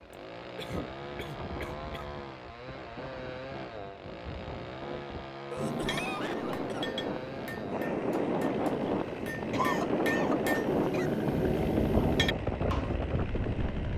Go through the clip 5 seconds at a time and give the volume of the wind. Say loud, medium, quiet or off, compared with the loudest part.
quiet, loud, loud.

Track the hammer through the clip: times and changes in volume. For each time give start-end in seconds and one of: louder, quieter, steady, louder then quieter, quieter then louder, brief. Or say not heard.
5.5-12.9 quieter then louder.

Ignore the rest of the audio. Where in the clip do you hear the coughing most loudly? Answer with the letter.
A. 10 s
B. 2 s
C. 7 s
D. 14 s
A.